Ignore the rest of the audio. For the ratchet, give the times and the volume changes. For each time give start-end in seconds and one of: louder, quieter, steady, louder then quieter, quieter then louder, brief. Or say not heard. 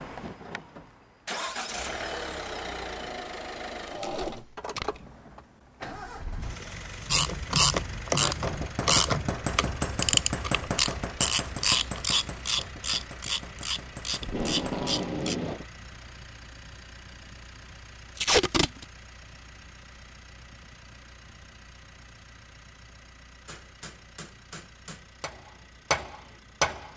7.0-15.3 quieter.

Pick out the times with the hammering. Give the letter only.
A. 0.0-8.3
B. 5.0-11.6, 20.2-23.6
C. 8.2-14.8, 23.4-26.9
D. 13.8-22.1
C.